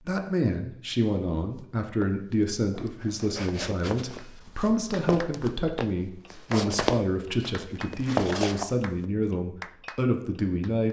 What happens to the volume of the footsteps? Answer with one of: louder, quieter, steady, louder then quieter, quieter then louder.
louder.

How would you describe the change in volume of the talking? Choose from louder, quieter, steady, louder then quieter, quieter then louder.
steady.